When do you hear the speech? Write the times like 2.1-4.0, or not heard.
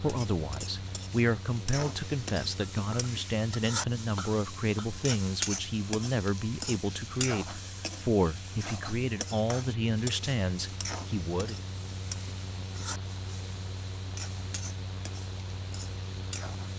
0.0-11.6.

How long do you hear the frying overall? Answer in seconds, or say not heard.
17 s.